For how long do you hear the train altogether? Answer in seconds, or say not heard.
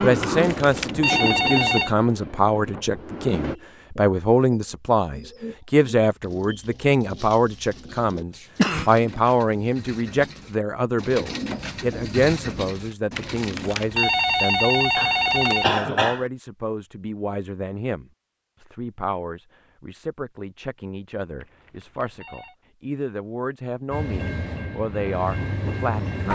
6 s.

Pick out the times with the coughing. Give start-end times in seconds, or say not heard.
7.9-8.9, 14.9-16.2.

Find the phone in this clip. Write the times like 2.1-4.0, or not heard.
0.2-1.9, 13.1-15.7, 21.4-22.6.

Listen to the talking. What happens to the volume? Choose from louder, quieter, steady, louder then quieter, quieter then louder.
quieter.